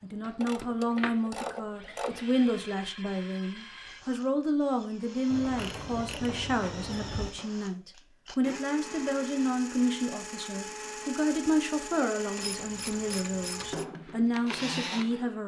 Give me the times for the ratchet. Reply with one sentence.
The ratchet can be heard from 0.4 to 2.3 s, from 5.3 to 7.3 s and from 12.3 to 13.8 s.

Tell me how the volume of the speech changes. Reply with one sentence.
The loudness of the speech stays about the same.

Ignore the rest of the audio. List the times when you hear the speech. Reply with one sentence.
You can hear the speech from 0.0 to 15.4 s.